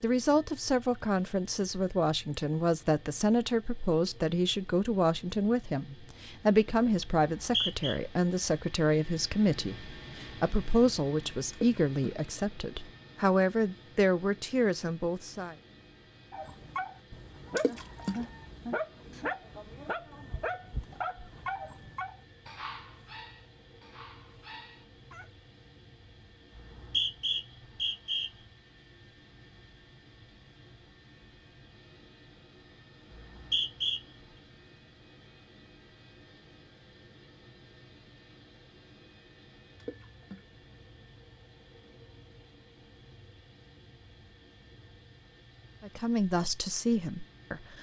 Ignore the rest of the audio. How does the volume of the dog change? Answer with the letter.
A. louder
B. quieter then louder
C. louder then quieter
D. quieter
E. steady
D.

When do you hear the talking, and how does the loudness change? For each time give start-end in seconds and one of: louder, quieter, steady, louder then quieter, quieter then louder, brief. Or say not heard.
0.0-15.6 steady
45.8-47.7 brief.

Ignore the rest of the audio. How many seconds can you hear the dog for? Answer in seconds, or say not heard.
9 s.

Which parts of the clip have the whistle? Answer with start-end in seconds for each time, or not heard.
7.2-8.0, 26.6-28.3, 33.1-34.0.